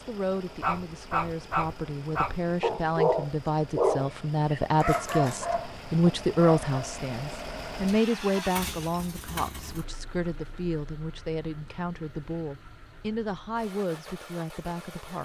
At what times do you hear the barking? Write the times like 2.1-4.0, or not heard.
0.6-6.8.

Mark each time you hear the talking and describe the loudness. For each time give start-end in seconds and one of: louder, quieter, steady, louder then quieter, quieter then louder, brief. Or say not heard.
0.0-15.2 louder then quieter.